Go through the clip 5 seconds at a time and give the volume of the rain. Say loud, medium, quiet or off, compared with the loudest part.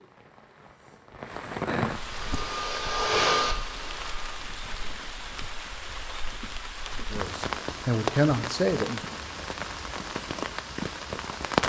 medium, medium, loud.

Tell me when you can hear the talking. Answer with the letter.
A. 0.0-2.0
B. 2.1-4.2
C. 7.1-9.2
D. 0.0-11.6
C.